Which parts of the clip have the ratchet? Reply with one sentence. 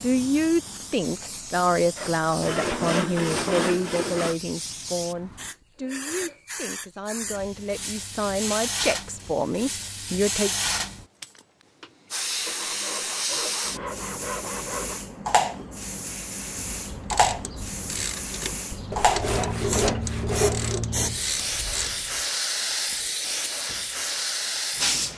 You can hear the ratchet from 16.7 to 22.4 s.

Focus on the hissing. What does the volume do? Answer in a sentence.
The volume of the hissing goes up.